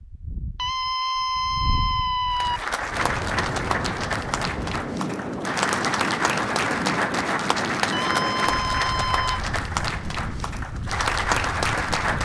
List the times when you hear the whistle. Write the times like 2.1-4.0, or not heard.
not heard.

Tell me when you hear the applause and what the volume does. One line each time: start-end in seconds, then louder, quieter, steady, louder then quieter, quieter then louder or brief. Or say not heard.
2.3-12.1 steady.